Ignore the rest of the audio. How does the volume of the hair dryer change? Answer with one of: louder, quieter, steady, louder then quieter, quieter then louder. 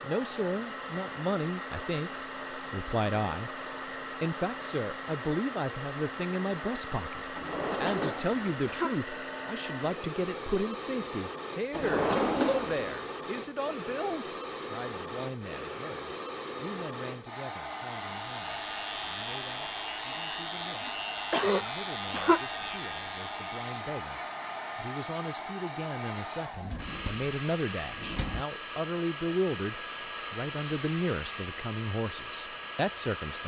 steady.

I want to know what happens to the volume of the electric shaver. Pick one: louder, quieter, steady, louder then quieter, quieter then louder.
steady.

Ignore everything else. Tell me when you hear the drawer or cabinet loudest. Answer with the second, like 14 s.
12 s.